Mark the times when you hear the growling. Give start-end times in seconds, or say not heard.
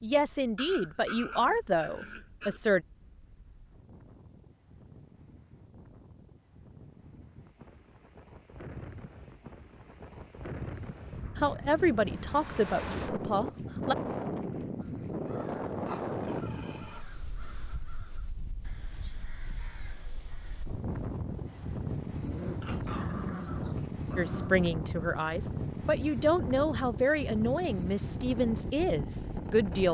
0.6-2.6, 15.8-17.1, 22.2-24.6.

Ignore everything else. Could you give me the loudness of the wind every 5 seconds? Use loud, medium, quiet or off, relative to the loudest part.
quiet, quiet, loud, loud, loud, loud.